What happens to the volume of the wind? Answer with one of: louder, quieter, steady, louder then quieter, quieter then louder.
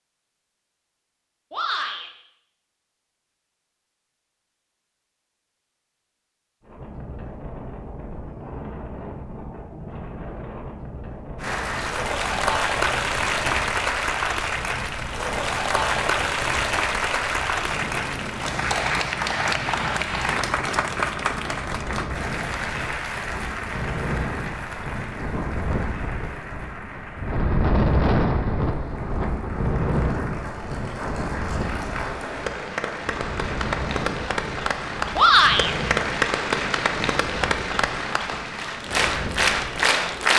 louder then quieter.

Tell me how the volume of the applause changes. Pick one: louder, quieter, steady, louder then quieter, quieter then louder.
quieter then louder.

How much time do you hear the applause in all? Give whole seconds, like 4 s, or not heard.
29 s.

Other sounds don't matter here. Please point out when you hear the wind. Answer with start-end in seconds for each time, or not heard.
6.6-40.3.